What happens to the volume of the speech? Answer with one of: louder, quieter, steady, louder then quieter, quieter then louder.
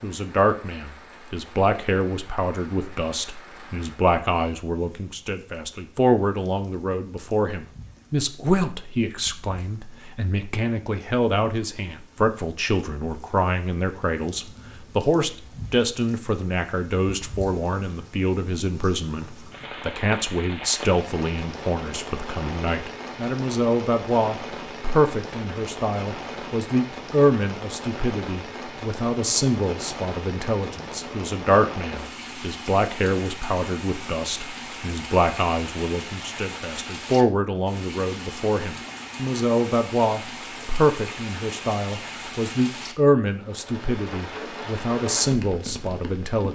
steady.